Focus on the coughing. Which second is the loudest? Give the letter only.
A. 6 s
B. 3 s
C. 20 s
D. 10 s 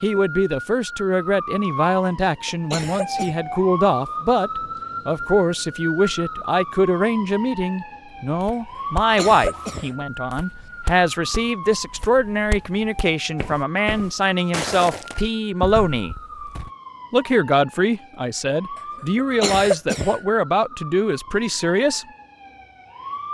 C.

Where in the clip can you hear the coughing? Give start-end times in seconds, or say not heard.
2.5-3.4, 8.9-9.9, 19.4-20.2.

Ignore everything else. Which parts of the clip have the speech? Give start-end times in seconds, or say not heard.
0.0-16.1, 17.1-22.1.